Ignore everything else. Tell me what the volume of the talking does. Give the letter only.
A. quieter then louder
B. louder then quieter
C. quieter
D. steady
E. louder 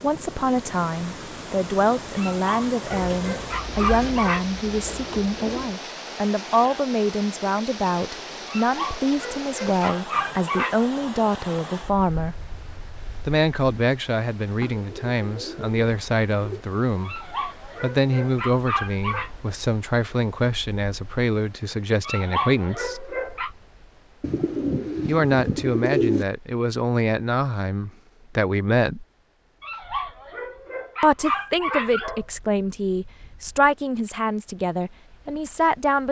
D.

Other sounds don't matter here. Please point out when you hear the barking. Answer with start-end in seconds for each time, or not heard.
2.1-4.5, 8.4-10.8, 17.1-19.3, 22.0-23.5, 29.6-32.2.